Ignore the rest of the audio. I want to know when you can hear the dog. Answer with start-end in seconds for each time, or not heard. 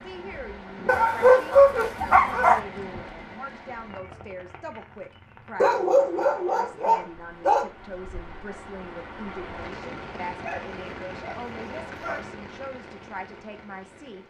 0.8-2.6, 5.6-7.7, 10.4-12.2.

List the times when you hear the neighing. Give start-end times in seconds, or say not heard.
not heard.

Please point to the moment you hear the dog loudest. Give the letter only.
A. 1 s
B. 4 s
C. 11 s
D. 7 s
A.